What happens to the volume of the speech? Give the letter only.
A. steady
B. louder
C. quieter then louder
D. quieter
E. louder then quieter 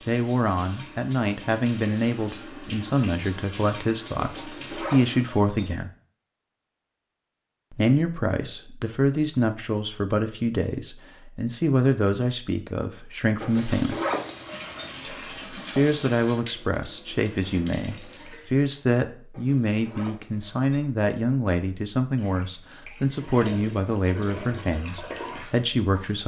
A.